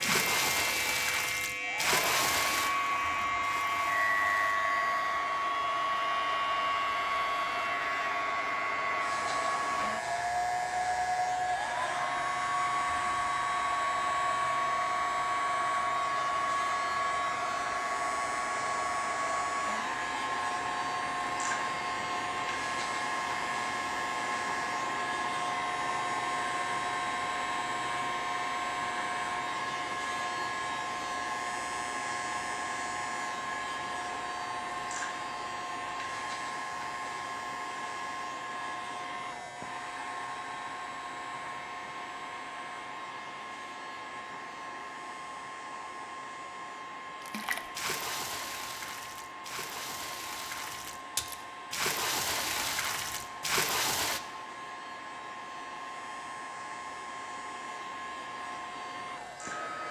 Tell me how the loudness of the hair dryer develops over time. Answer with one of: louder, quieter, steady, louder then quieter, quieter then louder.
quieter.